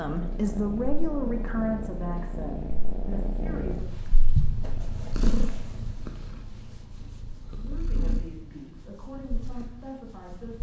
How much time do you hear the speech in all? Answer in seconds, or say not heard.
7 s.